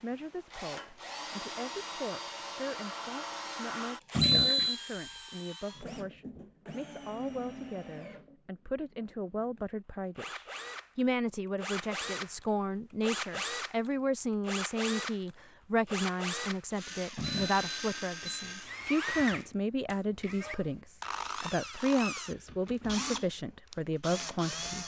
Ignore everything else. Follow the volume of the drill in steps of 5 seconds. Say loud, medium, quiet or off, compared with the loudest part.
loud, medium, loud, loud, loud.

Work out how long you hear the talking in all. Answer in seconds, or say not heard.
25 s.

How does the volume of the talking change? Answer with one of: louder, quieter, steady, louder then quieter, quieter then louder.
louder.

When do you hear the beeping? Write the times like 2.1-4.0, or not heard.
4.2-4.8, 17.1-18.5.